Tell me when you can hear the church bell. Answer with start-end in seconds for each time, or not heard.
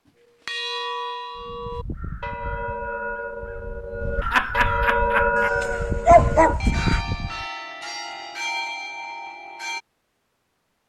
0.5-9.8.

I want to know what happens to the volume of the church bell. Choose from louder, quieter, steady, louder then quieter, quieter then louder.
louder then quieter.